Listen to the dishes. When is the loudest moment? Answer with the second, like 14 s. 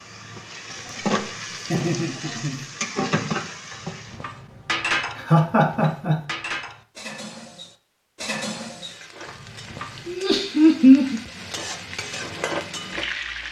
5 s.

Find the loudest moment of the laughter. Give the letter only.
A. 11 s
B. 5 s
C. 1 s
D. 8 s
A.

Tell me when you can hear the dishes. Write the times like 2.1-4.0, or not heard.
3.7-10.2.